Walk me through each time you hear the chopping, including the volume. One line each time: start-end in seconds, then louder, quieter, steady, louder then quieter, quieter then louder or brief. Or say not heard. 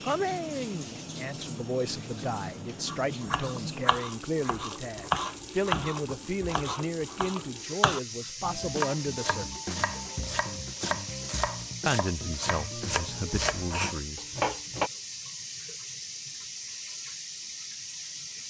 2.9-14.9 steady.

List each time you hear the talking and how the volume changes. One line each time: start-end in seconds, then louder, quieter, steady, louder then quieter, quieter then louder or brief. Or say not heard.
0.0-9.4 steady
11.8-14.2 brief.